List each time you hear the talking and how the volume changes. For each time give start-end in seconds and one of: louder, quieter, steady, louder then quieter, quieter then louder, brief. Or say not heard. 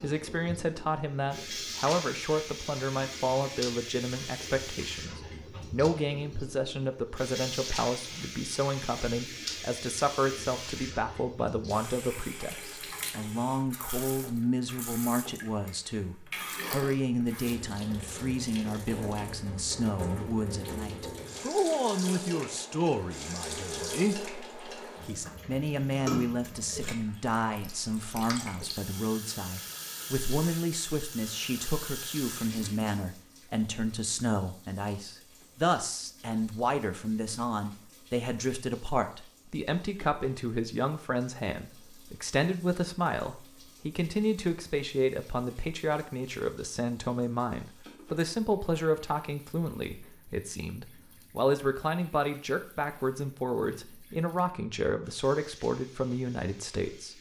0.0-57.1 steady.